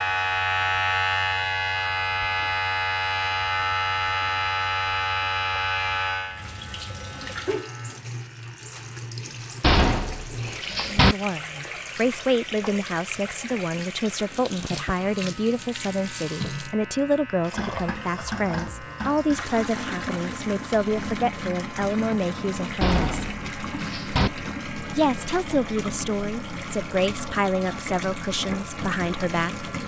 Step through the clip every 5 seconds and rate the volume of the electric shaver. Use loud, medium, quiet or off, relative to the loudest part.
loud, medium, quiet, quiet, quiet, quiet.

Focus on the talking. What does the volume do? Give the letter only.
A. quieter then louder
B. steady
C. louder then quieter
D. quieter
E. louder
B.